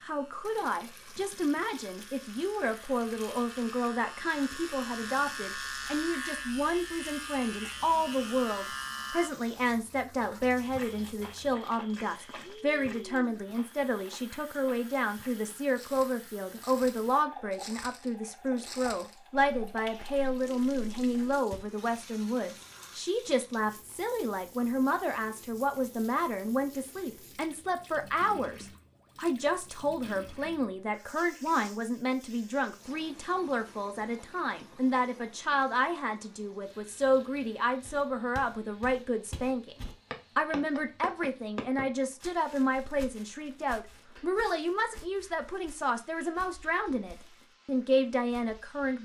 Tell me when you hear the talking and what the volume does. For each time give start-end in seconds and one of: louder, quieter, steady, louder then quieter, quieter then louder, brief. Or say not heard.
0.0-48.9 steady.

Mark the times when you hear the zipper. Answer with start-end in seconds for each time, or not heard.
not heard.